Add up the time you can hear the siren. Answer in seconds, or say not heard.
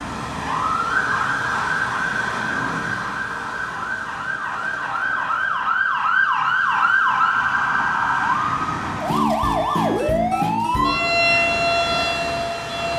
13 s.